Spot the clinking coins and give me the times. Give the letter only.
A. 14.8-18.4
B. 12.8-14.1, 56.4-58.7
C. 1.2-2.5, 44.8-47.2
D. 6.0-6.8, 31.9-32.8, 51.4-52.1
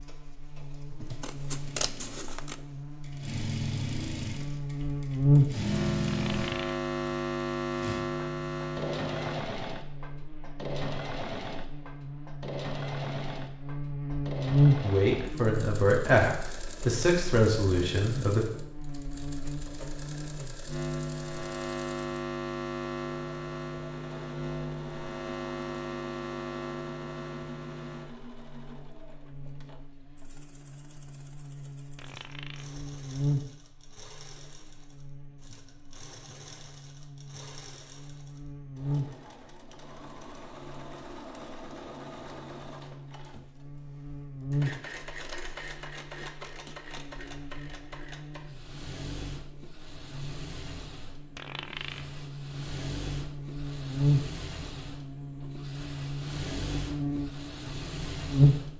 D.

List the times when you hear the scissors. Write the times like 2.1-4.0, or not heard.
1.2-2.5, 44.8-47.2.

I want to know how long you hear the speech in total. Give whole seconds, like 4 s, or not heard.
4 s.